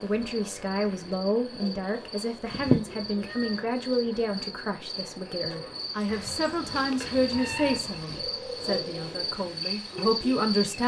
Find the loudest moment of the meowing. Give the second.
3 s.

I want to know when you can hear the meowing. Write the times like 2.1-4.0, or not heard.
2.5-3.6, 6.0-7.8.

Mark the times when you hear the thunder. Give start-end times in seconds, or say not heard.
not heard.